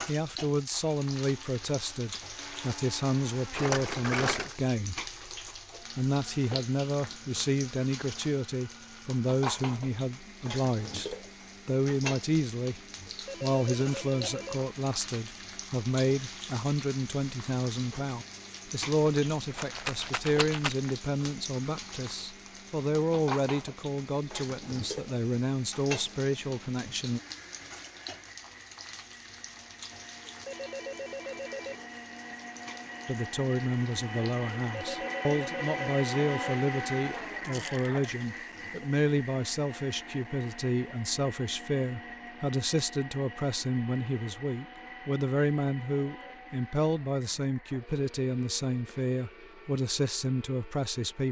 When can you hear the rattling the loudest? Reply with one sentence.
The loudest moment of the rattling is at 4 seconds.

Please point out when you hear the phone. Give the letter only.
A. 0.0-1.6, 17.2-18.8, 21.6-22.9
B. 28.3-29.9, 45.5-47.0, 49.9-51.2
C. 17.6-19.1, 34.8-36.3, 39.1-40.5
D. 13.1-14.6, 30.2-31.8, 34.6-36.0
D.